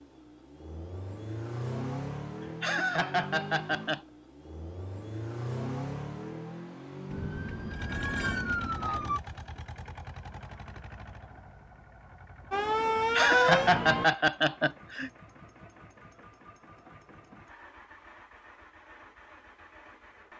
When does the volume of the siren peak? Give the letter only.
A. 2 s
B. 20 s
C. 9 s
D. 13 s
D.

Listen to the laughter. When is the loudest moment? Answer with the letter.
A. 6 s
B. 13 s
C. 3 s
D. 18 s
B.